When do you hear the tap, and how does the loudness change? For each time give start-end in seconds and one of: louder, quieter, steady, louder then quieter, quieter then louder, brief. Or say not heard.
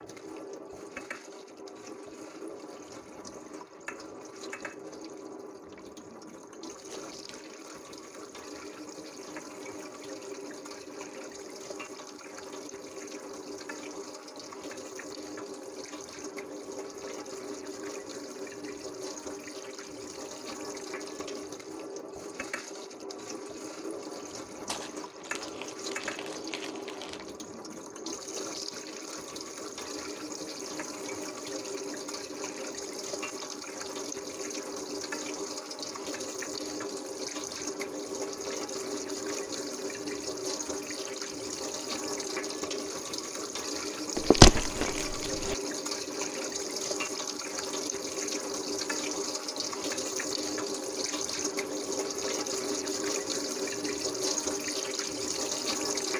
0.0-56.1 louder.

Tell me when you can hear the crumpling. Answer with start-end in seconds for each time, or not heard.
6.8-7.5, 24.6-27.2, 44.1-45.5.